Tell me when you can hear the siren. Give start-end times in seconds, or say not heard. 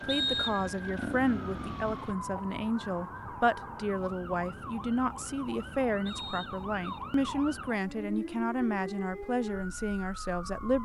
0.0-10.7.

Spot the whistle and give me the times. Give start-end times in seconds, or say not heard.
0.1-0.7, 6.0-7.0.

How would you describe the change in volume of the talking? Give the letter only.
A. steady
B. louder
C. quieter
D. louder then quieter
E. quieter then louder
A.